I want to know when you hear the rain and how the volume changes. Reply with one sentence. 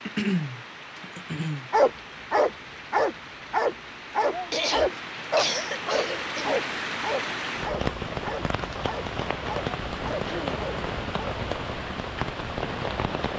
You can hear the rain from 0.0 to 13.3 s, getting louder.